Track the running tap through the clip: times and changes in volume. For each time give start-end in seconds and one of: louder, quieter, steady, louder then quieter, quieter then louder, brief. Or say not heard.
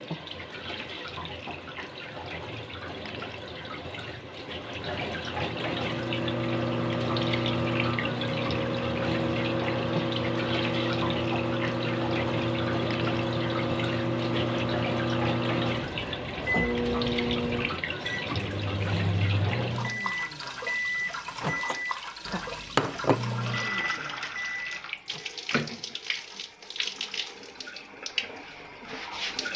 0.0-29.5 steady.